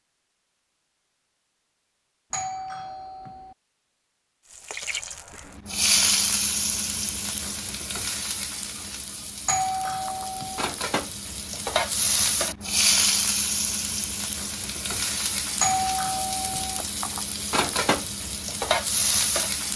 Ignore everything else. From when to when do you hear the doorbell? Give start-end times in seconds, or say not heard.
2.3-3.5, 9.4-10.7, 15.6-16.9.